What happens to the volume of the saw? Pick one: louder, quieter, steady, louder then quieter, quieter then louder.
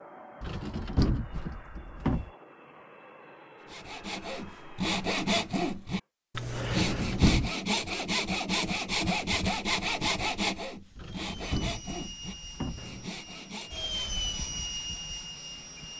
quieter.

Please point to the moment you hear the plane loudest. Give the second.
14 s.